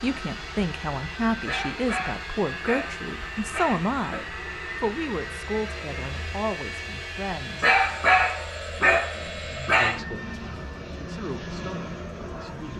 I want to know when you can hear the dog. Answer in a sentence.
You can hear the dog from 1.4 to 4.2 s and from 7.6 to 10.0 s.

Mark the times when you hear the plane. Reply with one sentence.
The plane can be heard from 0.0 to 12.7 s.